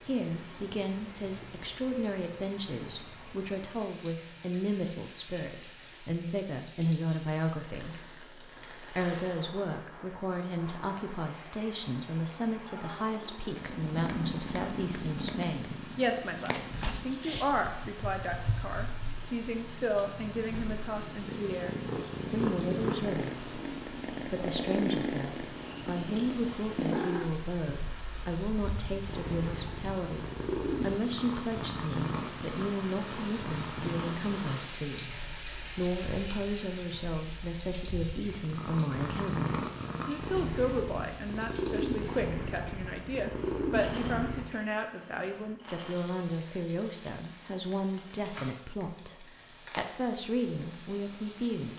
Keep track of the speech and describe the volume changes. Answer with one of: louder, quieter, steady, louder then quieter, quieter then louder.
steady.